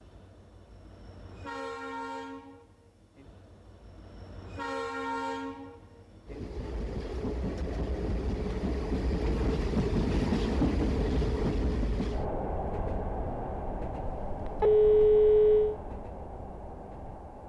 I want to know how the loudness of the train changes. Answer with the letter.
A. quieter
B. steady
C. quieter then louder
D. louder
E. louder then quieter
E.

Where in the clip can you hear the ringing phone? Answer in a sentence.
The ringing phone can be heard from 14.2 to 15.8 s.